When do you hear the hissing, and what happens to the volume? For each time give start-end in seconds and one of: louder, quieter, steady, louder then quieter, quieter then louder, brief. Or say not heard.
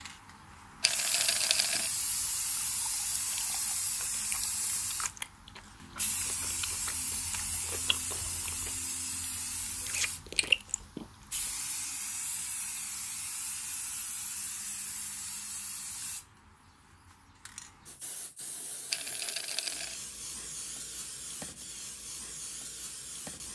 0.0-23.5 quieter.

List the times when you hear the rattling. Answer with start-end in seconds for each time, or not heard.
0.8-1.9, 18.9-19.9.